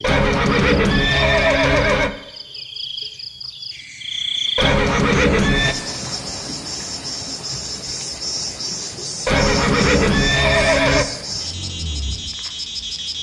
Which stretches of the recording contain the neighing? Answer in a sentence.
You can hear the neighing from 0.0 to 2.1 s, from 4.5 to 5.8 s and from 9.2 to 11.1 s.